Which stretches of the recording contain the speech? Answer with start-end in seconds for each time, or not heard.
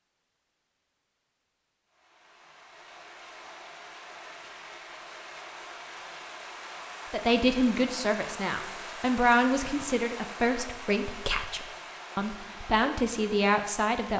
7.1-14.1.